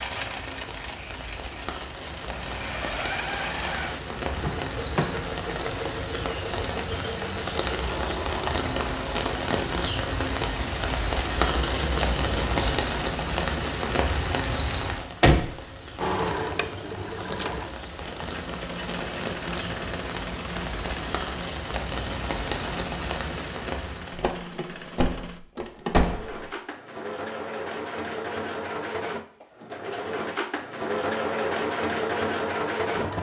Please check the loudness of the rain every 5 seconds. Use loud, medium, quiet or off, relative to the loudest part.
medium, loud, loud, medium, medium, off, off.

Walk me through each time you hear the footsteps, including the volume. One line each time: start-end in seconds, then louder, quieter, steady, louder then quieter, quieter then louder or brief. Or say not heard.
not heard.